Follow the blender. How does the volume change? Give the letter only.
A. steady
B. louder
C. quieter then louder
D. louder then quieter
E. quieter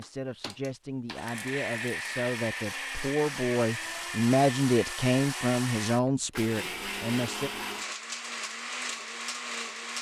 A.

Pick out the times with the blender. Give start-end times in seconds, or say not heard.
0.0-9.9.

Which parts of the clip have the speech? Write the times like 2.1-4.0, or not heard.
0.0-7.5.